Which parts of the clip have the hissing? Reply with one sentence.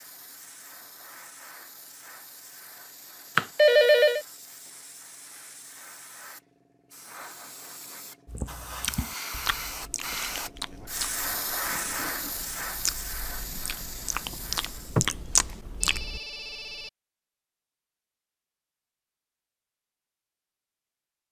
You can hear the hissing from 0.0 to 15.2 s.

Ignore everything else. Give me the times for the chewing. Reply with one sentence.
The chewing can be heard from 8.2 to 16.2 s.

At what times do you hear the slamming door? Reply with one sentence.
The slamming door can't be heard in this clip.